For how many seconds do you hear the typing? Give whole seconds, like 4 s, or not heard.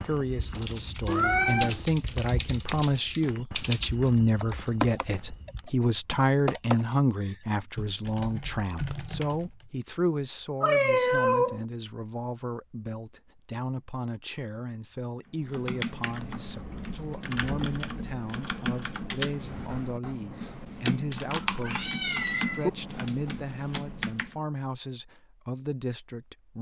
18 s.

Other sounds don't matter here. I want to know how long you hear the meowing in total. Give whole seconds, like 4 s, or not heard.
3 s.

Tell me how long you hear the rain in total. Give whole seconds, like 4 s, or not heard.
not heard.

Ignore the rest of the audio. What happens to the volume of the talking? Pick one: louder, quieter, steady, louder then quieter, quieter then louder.
quieter.